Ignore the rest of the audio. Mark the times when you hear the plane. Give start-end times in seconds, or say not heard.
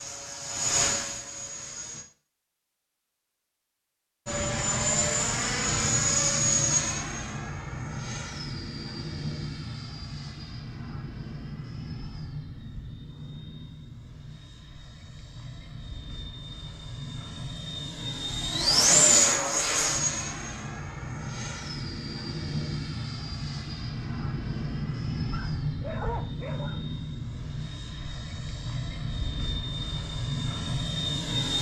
0.0-2.0, 4.2-31.5.